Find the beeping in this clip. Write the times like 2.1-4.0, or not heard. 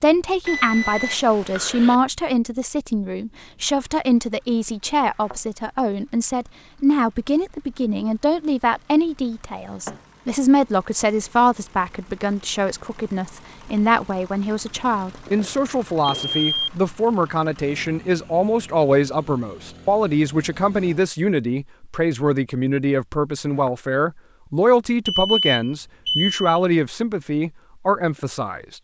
0.5-1.9, 15.2-16.7, 25.1-26.6.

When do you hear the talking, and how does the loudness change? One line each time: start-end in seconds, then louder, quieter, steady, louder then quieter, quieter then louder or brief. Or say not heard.
0.0-28.7 steady.